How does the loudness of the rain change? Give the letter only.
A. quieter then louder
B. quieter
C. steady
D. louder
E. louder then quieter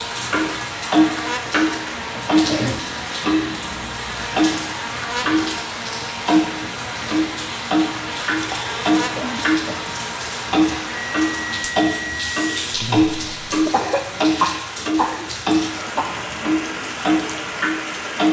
C.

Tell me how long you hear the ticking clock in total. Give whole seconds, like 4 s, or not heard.
17 s.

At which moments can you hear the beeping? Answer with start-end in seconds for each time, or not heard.
11.1-12.6.